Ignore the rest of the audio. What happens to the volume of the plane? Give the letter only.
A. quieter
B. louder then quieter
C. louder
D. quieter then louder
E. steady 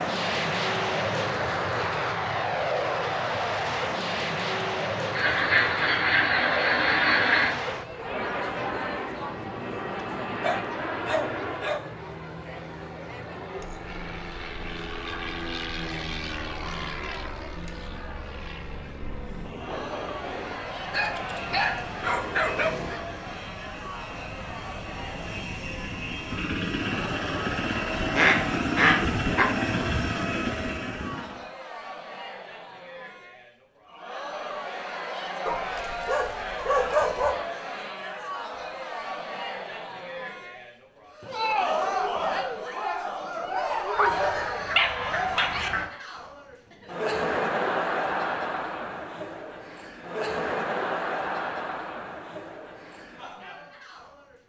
D.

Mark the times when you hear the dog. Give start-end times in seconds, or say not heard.
10.4-11.9, 20.9-23.0, 35.5-37.4, 43.7-45.7.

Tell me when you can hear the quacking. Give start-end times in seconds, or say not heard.
5.1-7.5, 28.1-29.4, 44.0-45.9.